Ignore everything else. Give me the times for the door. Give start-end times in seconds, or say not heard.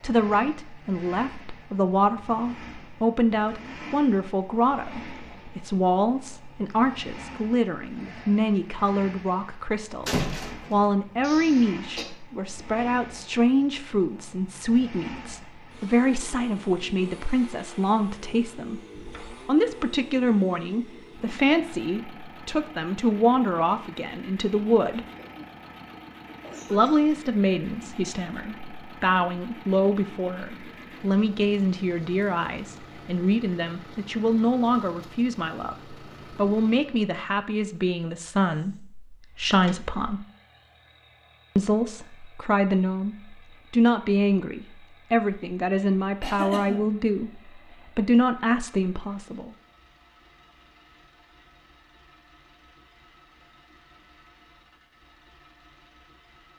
10.1-10.8, 18.9-19.5, 39.5-40.0.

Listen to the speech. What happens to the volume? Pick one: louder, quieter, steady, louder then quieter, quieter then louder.
steady.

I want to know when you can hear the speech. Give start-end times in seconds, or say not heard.
0.0-18.8, 19.4-25.1, 26.7-40.2, 41.5-49.5.